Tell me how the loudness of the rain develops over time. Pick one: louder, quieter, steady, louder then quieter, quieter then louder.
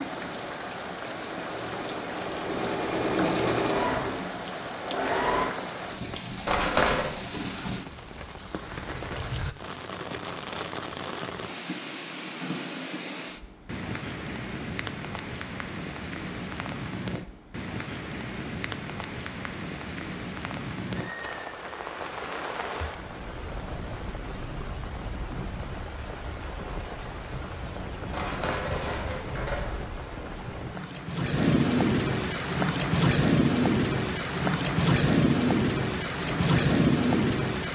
louder.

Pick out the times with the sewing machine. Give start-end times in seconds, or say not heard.
0.0-5.5.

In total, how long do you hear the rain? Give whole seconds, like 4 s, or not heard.
38 s.